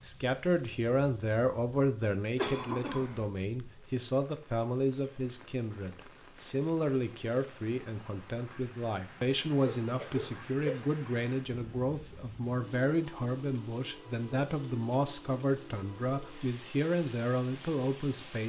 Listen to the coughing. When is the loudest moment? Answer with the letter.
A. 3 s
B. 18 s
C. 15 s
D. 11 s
A.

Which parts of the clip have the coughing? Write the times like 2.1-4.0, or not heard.
2.4-3.2, 9.6-10.9.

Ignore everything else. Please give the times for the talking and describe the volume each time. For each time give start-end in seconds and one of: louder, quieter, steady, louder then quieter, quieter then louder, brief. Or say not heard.
0.0-18.4 steady.